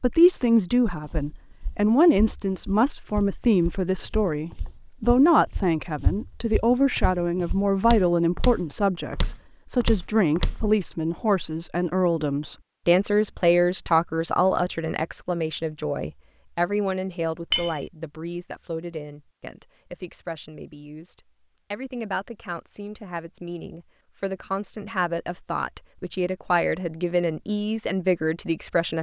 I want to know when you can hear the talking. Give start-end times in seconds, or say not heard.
0.0-28.9.